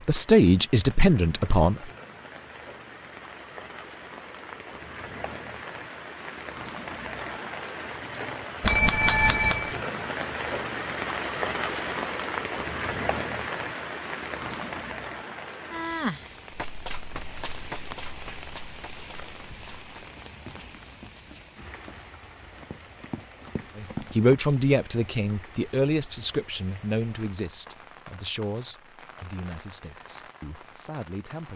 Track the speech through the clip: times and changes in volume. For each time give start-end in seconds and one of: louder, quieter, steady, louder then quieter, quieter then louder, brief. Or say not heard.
0.1-1.9 brief
23.8-31.5 quieter.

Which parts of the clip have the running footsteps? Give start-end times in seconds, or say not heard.
16.5-24.4.